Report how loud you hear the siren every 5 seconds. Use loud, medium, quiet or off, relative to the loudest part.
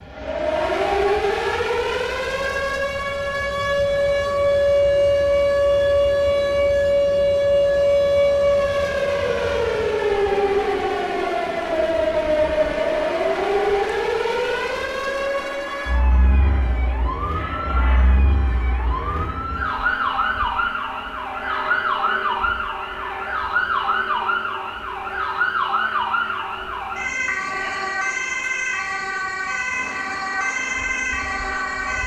loud, loud, loud, medium, medium, medium, medium.